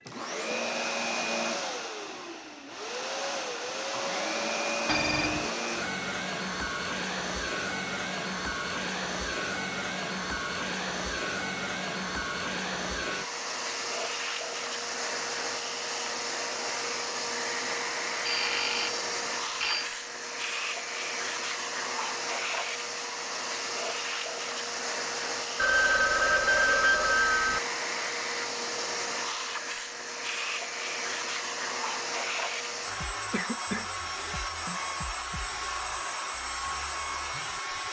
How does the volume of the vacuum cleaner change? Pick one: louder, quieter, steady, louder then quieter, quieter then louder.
steady.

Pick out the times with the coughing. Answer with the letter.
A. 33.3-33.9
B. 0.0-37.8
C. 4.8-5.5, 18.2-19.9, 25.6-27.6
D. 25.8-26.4
A.